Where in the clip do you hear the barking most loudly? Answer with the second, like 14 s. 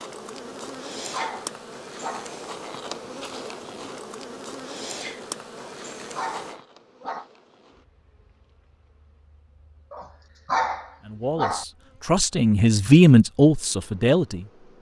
11 s.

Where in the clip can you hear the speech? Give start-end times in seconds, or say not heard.
11.1-14.5.